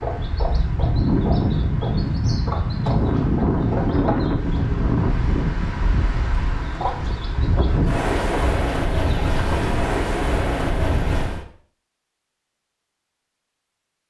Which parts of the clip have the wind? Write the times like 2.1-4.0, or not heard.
0.0-11.4.